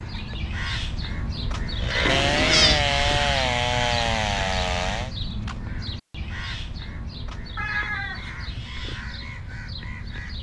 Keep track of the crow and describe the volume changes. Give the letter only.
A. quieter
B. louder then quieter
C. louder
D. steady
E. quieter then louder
A.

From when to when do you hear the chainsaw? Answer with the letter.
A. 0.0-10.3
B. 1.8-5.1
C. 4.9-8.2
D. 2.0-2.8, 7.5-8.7
B.